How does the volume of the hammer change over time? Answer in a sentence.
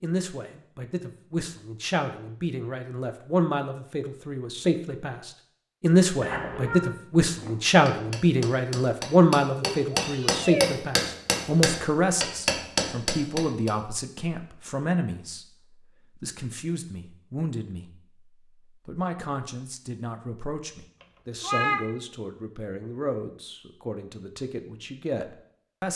The loudness of the hammer goes up.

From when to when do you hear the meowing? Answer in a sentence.
You can hear the meowing from 6.2 to 6.9 s, from 9.6 to 10.7 s and from 21.4 to 21.8 s.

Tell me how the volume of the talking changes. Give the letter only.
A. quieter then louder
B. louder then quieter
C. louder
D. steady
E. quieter
B.